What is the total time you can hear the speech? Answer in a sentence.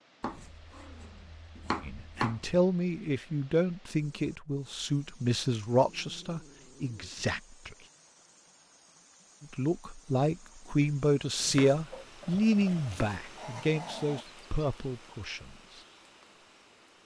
The speech can be heard for 12 seconds in total.